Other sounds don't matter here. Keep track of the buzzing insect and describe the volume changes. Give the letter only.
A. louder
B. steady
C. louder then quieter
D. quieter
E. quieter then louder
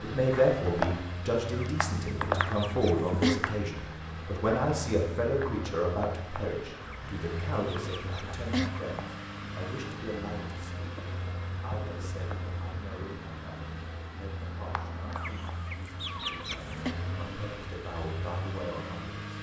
D.